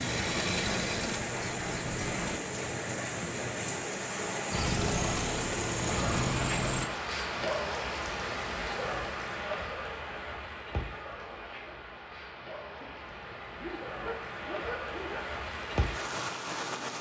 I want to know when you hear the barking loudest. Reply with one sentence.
The volume of the barking peaks at 15 seconds.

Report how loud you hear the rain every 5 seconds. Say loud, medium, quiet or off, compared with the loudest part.
loud, loud, medium, loud.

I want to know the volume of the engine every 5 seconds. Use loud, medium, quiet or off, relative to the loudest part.
loud, loud, off, off.